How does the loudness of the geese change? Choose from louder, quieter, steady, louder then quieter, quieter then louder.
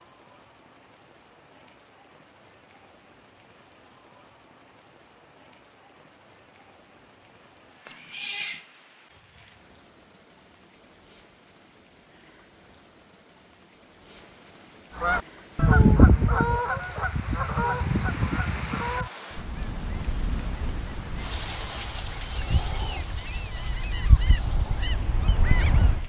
quieter then louder.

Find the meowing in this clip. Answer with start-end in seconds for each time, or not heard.
7.8-8.7.